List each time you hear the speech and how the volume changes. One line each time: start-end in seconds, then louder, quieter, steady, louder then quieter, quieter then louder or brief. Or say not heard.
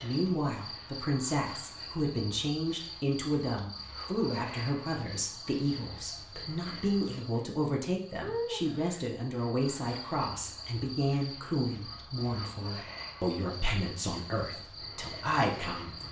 0.0-16.0 steady.